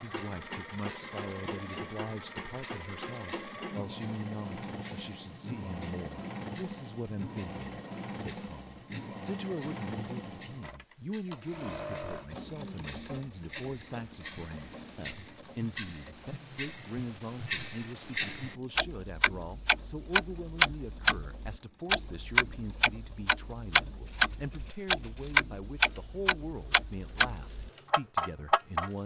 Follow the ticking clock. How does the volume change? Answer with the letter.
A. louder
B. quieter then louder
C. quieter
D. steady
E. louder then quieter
A.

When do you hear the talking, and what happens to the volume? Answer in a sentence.
The talking can be heard from 0.0 to 29.0 s, at a steady volume.